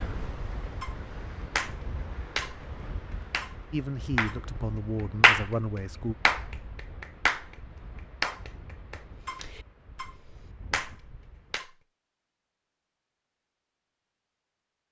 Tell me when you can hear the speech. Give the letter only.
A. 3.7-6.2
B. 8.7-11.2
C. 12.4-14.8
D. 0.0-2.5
A.